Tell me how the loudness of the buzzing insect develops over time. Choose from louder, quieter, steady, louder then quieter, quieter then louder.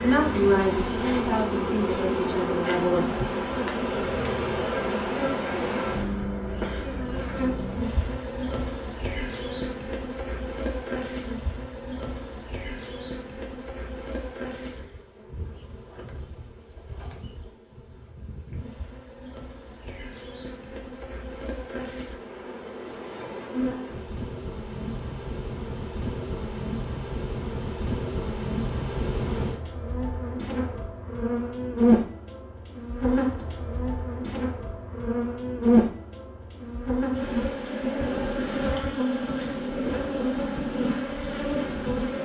quieter then louder.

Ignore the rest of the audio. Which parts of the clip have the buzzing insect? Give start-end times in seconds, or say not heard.
0.0-42.2.